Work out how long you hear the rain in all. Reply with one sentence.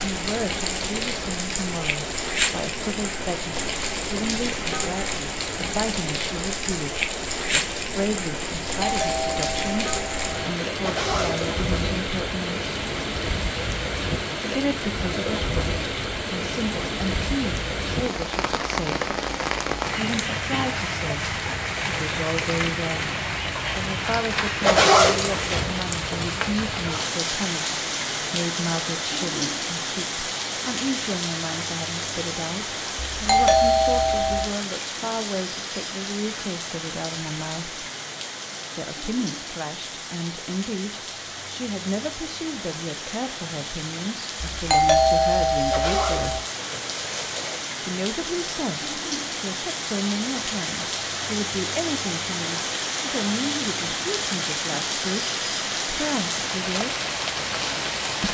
The rain can be heard for 58 seconds in total.